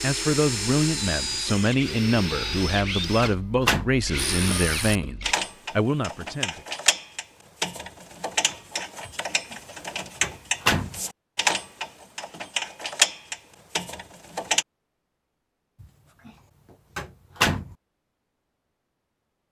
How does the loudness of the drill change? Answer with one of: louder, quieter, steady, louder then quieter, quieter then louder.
quieter then louder.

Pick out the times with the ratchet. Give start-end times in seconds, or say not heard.
4.2-14.7.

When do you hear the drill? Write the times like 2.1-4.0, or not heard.
0.0-5.3.